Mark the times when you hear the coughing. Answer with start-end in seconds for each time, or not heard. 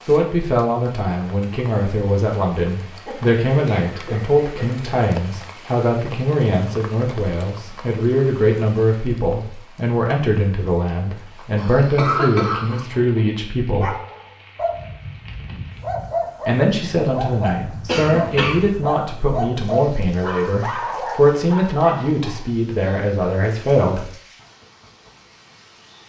3.0-4.9, 11.6-12.8, 17.9-18.6.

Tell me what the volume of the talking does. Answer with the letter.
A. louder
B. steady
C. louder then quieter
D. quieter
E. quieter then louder
B.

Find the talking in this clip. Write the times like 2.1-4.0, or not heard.
0.1-13.9, 16.4-24.1.